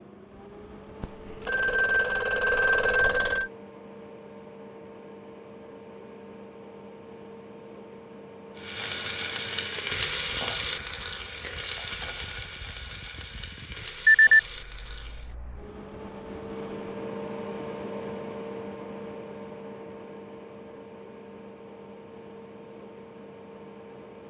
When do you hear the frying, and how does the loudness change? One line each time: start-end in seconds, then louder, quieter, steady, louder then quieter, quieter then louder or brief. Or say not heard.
8.6-15.3 quieter.